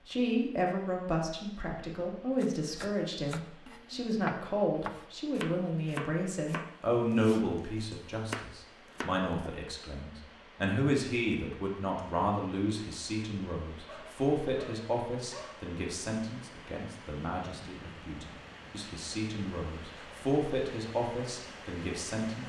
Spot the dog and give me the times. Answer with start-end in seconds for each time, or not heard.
13.8-15.7.